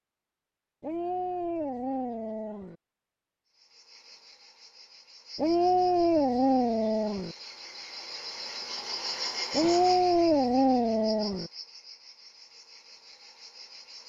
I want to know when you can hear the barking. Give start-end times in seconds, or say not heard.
0.8-2.8, 5.3-7.3, 9.5-11.5.